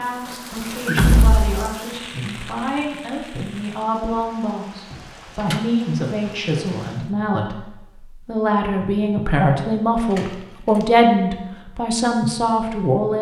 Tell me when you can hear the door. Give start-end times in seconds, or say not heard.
0.9-1.6, 4.9-5.6, 9.9-10.9.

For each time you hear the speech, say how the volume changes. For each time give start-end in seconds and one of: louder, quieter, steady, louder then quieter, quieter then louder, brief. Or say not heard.
0.0-13.1 louder.